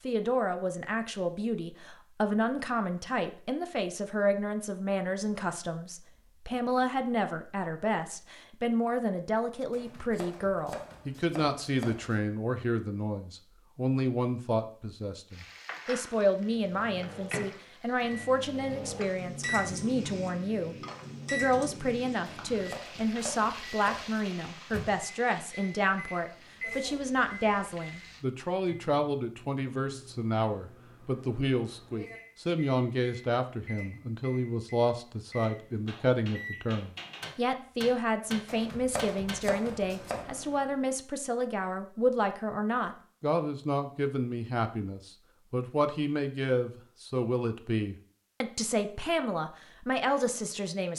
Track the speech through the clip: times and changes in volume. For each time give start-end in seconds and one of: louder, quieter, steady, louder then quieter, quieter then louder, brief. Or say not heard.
0.0-50.9 steady.